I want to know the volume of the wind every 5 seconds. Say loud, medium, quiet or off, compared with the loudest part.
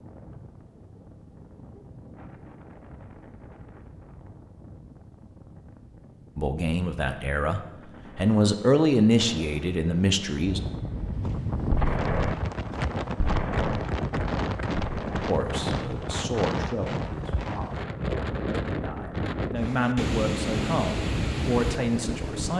quiet, quiet, loud, loud, loud.